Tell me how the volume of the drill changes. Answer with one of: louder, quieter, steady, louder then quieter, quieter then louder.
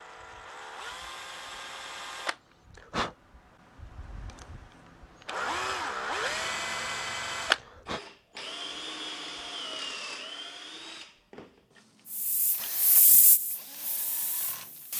louder then quieter.